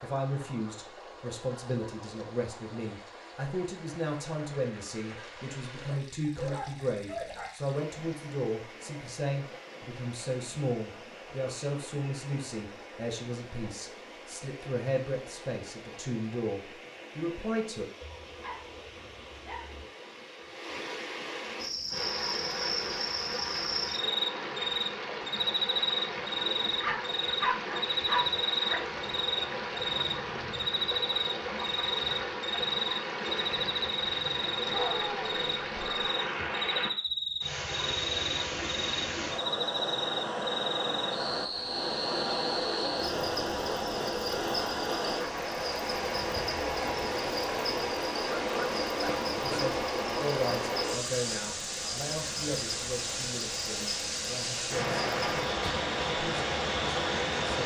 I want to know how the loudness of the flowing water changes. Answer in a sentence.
The volume of the flowing water goes up.